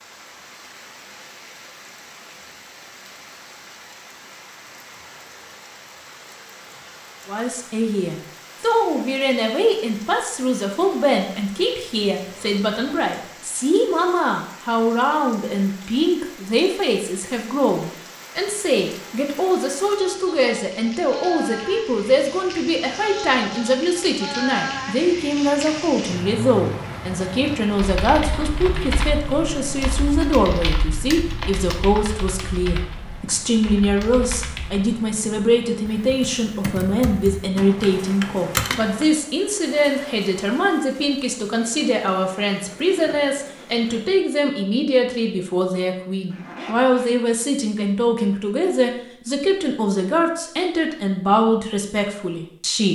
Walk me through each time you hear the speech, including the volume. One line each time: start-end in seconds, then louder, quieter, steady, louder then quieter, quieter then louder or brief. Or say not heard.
7.2-52.9 steady.